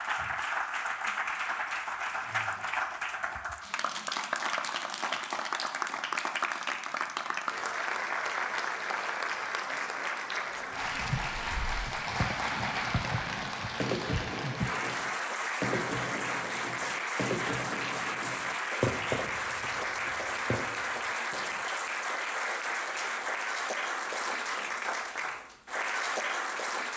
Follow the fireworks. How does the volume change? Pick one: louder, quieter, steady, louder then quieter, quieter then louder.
quieter.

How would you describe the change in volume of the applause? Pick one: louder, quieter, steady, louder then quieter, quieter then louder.
steady.